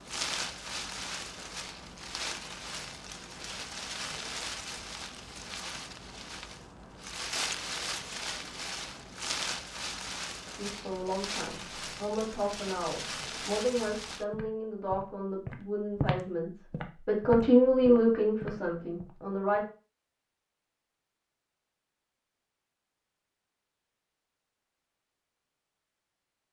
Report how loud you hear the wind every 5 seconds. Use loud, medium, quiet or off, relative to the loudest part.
loud, loud, loud, off, off, off.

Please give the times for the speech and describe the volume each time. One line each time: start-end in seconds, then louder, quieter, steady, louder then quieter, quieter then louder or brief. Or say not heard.
10.6-19.6 louder.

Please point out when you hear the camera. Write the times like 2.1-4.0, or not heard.
not heard.